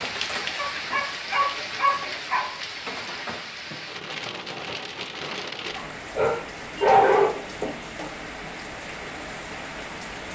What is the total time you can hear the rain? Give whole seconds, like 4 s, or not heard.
10 s.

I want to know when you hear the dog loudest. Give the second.
7 s.